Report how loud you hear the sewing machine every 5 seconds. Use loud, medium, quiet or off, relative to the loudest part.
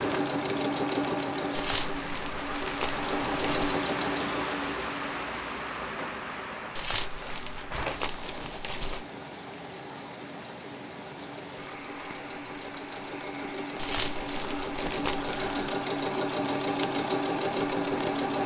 loud, quiet, medium, loud.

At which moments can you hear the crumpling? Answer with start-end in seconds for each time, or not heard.
1.6-3.8, 6.8-9.1, 13.8-15.8.